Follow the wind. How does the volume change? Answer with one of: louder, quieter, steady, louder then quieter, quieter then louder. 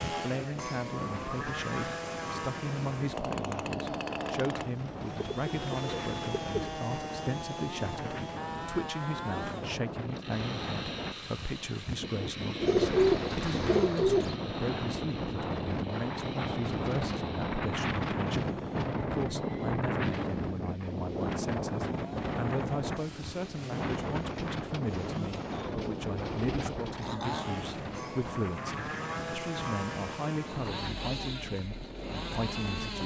louder then quieter.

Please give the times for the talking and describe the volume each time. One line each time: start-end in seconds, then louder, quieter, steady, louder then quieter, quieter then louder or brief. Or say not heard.
0.1-33.0 steady.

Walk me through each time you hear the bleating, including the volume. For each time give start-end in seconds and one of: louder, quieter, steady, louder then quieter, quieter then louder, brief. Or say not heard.
not heard.